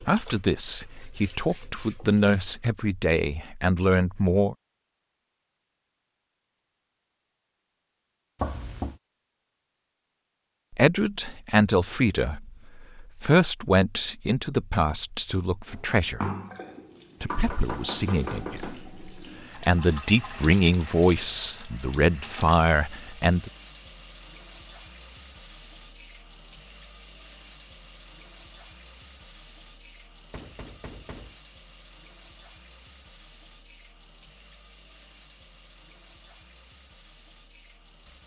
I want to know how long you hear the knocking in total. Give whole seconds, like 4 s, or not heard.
3 s.